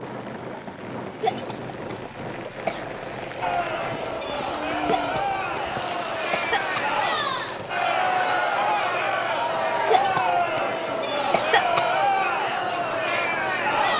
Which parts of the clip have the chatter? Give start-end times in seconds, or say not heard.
3.4-13.9.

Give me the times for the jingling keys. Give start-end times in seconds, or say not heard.
not heard.